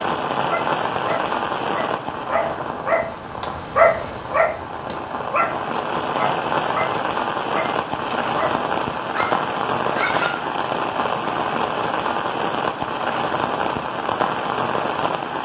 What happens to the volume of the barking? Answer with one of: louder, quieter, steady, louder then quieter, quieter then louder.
louder then quieter.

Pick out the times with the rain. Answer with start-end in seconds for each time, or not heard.
0.0-15.3.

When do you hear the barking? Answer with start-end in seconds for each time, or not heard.
0.3-10.5.